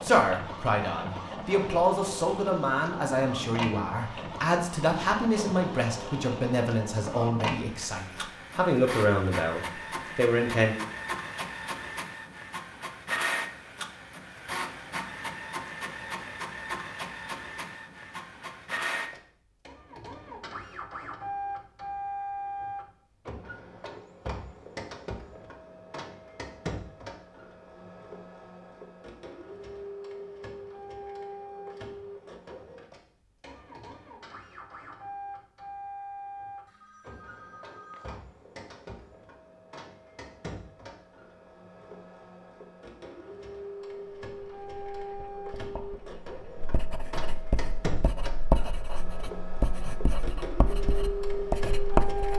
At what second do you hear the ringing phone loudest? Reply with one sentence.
The volume of the ringing phone peaks at 38 seconds.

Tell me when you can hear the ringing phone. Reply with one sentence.
The ringing phone can be heard from 36.6 to 38.2 s.